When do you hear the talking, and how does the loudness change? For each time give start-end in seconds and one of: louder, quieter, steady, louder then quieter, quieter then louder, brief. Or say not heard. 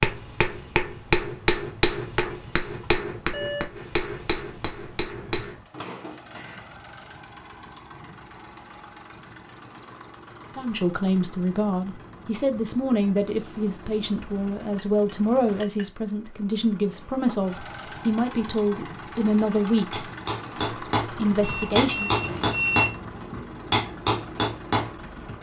10.6-20.1 steady
21.0-22.1 brief.